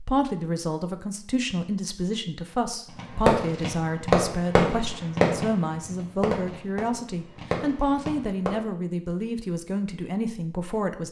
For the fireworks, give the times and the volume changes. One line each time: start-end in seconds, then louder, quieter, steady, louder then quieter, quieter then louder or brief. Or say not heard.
3.0-8.6 quieter.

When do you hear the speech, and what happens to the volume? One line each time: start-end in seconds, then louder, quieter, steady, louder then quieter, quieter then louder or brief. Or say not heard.
0.0-11.0 steady.